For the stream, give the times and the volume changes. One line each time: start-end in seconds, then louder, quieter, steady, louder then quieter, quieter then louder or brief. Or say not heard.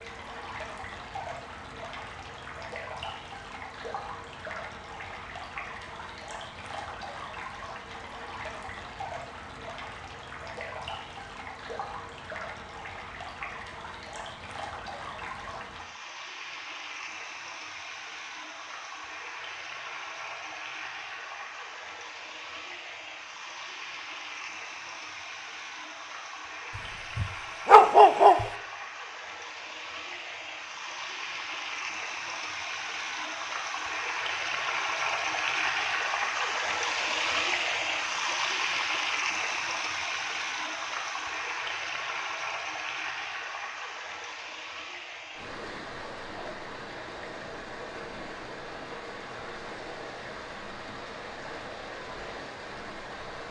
0.0-53.4 louder then quieter.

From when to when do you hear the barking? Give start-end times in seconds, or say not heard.
27.1-28.4.